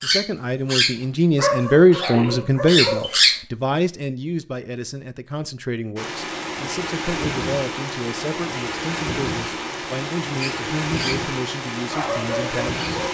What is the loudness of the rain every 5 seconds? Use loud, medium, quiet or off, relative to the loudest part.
off, loud, loud.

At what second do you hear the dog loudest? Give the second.
3 s.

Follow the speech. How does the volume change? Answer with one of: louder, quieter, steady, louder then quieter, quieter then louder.
quieter.